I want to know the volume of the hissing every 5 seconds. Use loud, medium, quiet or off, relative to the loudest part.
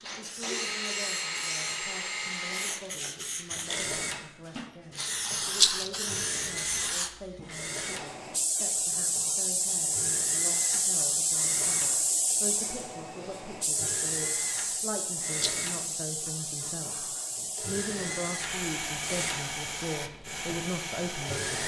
medium, loud, loud, medium, medium.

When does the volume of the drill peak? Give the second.
1 s.